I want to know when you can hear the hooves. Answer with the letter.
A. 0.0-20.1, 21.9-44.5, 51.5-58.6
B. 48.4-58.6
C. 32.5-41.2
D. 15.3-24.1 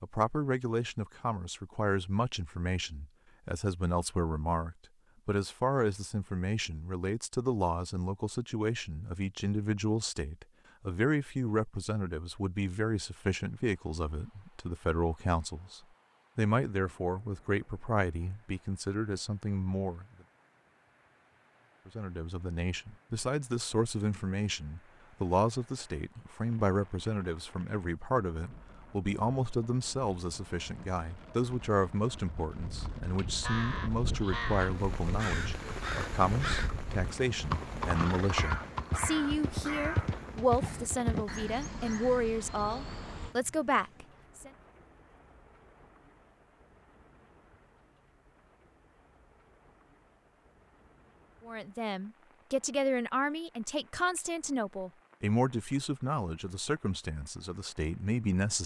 C.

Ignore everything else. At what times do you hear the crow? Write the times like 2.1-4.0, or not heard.
33.1-43.4.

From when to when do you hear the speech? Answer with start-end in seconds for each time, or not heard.
0.0-20.1, 21.9-44.5, 51.5-58.6.